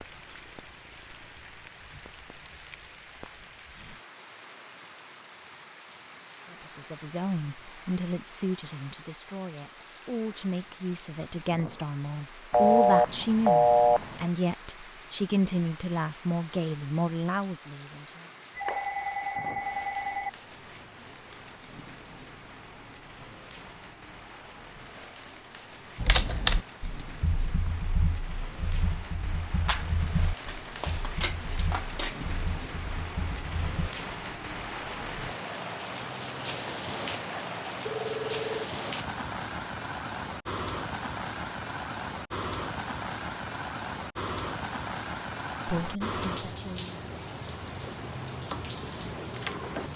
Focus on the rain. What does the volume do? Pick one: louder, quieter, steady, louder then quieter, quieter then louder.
louder.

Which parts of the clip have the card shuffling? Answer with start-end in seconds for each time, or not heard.
29.6-32.2.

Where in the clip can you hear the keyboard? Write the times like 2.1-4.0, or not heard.
25.9-33.9.